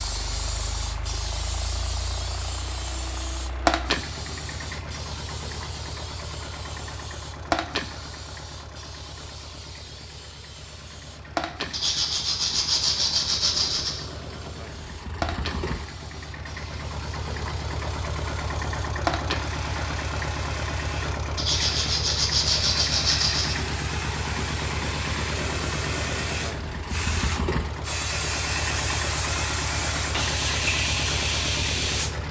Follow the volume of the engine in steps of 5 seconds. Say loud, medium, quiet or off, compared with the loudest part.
medium, medium, medium, loud, loud, loud, loud.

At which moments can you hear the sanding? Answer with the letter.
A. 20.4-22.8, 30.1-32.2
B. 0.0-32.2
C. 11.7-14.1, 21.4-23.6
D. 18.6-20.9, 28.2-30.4
C.